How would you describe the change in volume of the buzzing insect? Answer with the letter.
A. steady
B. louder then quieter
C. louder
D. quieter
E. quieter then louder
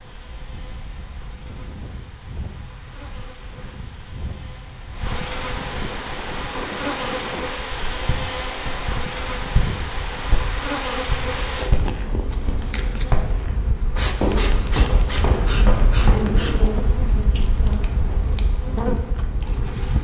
C.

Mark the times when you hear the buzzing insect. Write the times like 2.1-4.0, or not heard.
0.0-19.9.